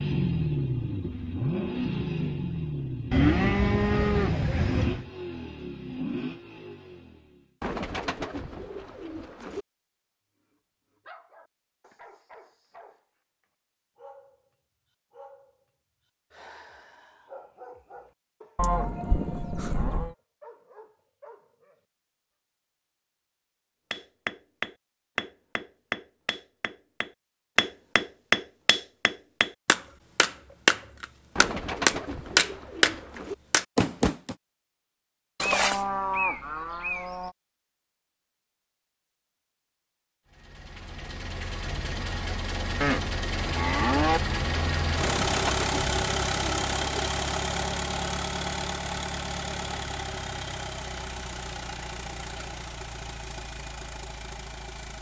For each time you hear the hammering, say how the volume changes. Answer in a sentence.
The hammering can be heard from 23.9 to 34.4 s, getting louder.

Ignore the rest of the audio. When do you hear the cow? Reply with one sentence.
The cow can be heard from 3.1 to 5.0 s, from 18.6 to 20.1 s, from 35.4 to 37.3 s and from 42.8 to 44.2 s.